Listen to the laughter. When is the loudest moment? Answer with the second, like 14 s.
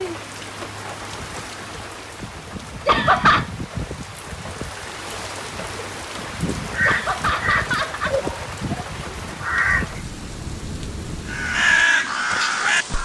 3 s.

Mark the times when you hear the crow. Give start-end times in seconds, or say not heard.
6.7-10.0, 11.2-13.0.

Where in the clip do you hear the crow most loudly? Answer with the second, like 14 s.
12 s.